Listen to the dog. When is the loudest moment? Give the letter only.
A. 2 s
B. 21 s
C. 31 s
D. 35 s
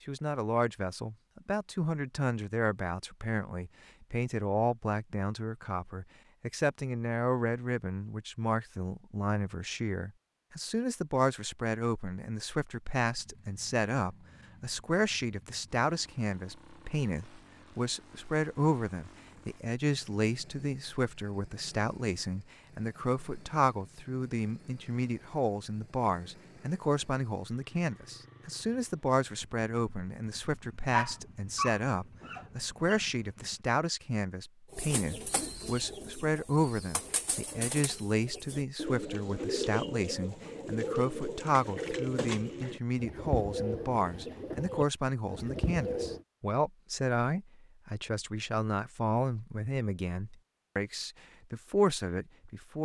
C.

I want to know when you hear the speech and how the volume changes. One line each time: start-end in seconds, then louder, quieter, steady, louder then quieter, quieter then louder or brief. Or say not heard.
0.1-52.8 steady.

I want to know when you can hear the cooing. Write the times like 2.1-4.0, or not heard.
34.7-46.2.